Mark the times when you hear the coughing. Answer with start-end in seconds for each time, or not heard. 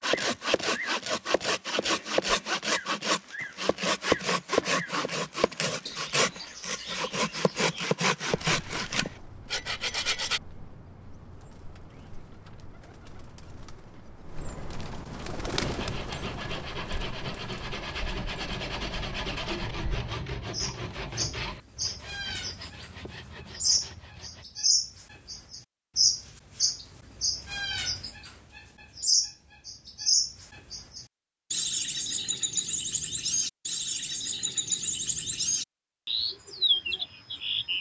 not heard.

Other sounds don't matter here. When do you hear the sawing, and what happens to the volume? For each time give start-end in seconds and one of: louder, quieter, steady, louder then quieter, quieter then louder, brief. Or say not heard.
0.0-10.4 steady
15.6-24.4 quieter.